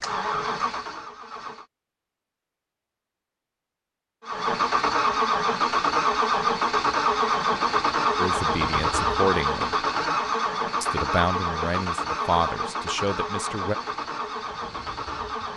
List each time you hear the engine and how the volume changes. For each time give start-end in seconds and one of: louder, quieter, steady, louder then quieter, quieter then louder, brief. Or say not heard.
0.0-1.6 brief
4.2-15.5 quieter.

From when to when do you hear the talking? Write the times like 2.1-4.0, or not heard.
8.2-9.8, 10.8-13.8.